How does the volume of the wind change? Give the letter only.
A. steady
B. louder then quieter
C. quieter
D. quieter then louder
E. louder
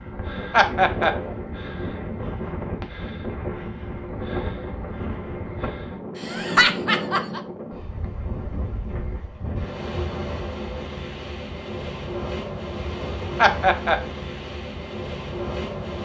A.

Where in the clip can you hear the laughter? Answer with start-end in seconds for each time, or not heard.
0.5-1.1, 6.2-7.4, 13.3-13.9.